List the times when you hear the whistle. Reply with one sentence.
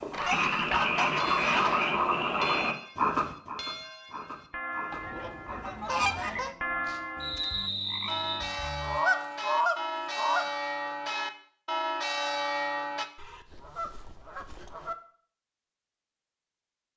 You can hear the whistle from 7.2 to 8.6 s.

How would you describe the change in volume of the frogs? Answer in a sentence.
The loudness of the frogs goes down.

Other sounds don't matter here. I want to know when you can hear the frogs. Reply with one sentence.
The frogs can be heard from 0.0 to 9.0 s.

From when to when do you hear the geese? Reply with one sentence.
The geese can be heard from 0.1 to 1.9 s, from 4.9 to 6.5 s, from 8.8 to 10.4 s and from 13.2 to 14.9 s.